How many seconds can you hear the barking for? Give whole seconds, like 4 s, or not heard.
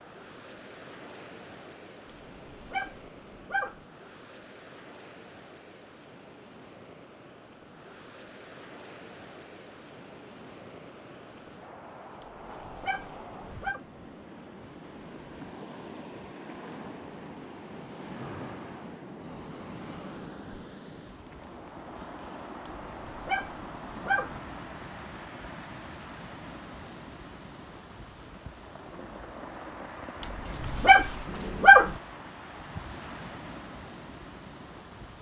7 s.